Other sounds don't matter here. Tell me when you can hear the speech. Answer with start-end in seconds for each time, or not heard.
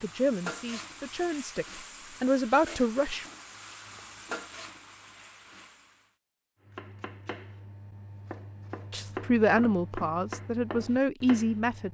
0.0-3.2, 8.9-11.9.